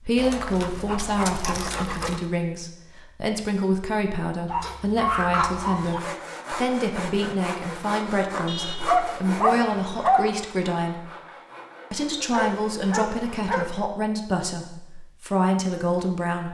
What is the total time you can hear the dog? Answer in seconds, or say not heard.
7 s.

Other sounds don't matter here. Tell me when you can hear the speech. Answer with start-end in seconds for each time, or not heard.
0.1-11.1, 11.9-16.4.